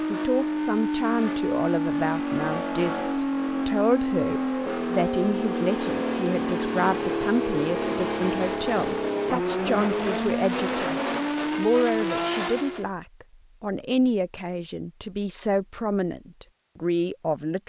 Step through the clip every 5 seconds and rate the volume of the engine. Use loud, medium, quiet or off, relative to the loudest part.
loud, loud, loud, off.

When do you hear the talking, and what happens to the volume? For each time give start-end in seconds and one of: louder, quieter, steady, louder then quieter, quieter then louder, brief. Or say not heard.
0.1-17.6 steady.